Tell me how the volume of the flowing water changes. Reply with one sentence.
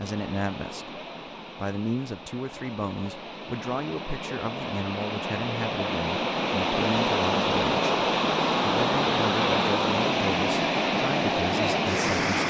The volume of the flowing water goes up.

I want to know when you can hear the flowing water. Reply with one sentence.
You can hear the flowing water from 0.0 to 12.4 s.